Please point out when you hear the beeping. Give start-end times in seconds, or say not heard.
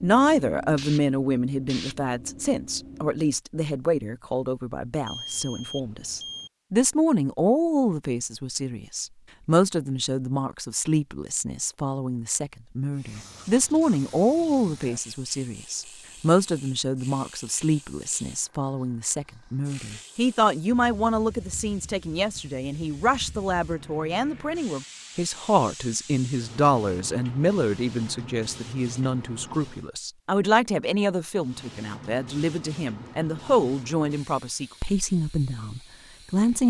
5.0-6.5.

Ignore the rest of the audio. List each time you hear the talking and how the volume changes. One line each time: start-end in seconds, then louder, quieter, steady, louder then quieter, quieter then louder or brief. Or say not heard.
0.0-36.6 steady.